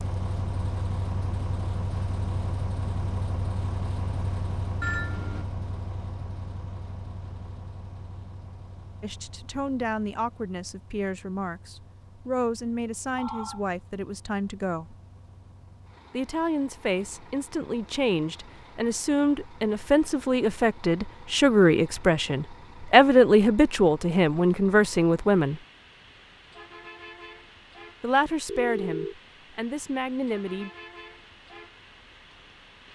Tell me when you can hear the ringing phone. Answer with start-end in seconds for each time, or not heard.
4.8-5.5, 13.2-13.7, 28.4-29.1.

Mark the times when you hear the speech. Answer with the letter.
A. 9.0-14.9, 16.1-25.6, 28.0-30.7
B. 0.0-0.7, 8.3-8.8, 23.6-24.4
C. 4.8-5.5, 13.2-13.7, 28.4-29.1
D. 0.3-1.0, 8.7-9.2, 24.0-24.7
A.